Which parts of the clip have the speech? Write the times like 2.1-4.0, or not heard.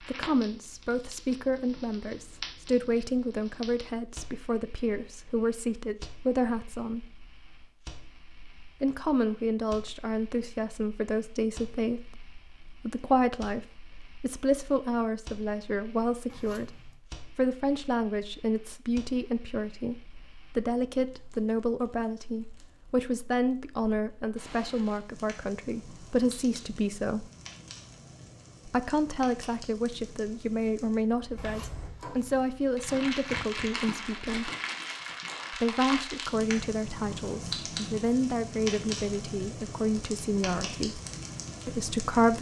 0.0-7.1, 8.8-13.6, 14.2-27.3, 28.6-34.5, 35.5-41.0, 41.6-42.3.